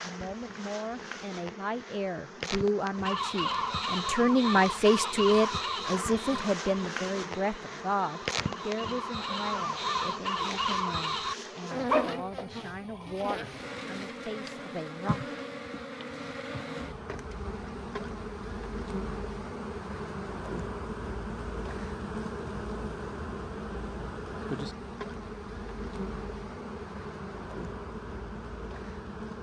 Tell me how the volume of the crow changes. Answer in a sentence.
The loudness of the crow goes down, then up.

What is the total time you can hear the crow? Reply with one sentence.
The crow can be heard for 9 seconds in total.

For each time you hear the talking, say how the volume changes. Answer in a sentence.
You can hear the talking from 0.0 to 15.2 s, getting louder then quieter.